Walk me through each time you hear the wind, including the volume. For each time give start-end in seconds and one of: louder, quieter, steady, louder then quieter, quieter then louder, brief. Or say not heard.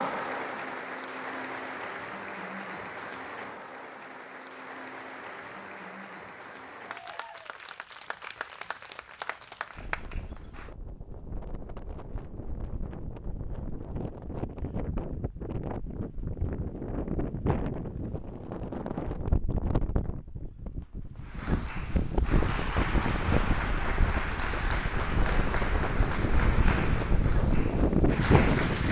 9.8-28.8 louder.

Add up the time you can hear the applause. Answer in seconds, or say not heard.
18 s.